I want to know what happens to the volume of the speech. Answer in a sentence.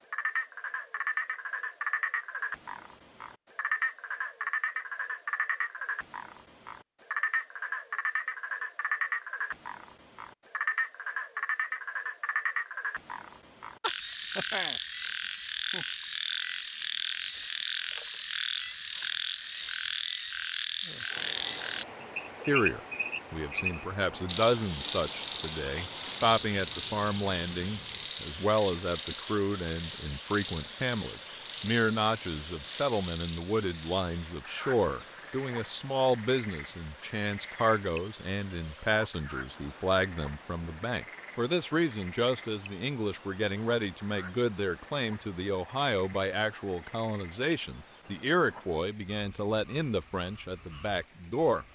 The loudness of the speech stays about the same.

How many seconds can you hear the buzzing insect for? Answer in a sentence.
The buzzing insect can't be heard in this clip.